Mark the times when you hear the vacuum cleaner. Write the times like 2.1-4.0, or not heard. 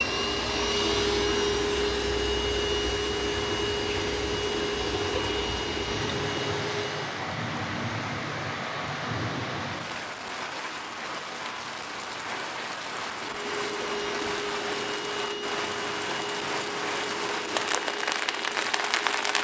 0.0-7.2, 13.2-19.3.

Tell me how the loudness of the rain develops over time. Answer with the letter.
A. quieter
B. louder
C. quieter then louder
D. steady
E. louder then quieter
B.